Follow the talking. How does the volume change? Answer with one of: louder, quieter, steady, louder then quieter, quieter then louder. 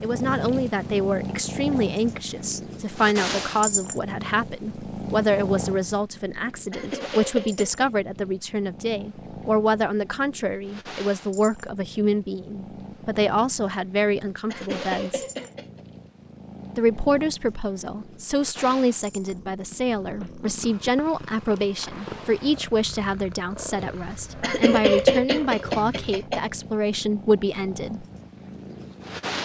steady.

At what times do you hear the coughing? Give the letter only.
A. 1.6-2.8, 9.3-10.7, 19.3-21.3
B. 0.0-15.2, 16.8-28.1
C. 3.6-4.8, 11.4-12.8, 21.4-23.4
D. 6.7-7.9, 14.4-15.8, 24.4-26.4
D.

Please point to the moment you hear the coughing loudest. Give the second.
25 s.